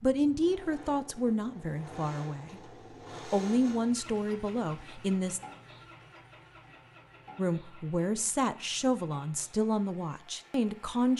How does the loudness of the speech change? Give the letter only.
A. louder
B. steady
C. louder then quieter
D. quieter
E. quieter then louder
B.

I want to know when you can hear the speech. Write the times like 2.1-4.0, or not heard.
0.0-5.4, 7.3-11.1.